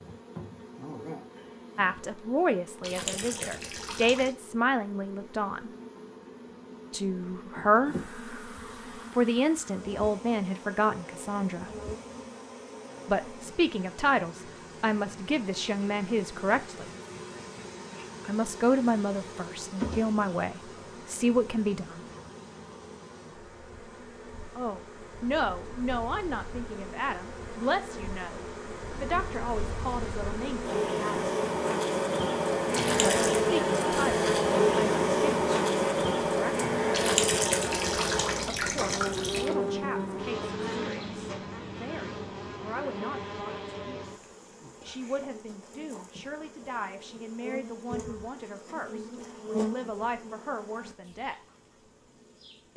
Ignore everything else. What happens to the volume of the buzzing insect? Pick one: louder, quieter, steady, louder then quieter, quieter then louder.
louder then quieter.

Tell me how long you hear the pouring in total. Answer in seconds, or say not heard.
5 s.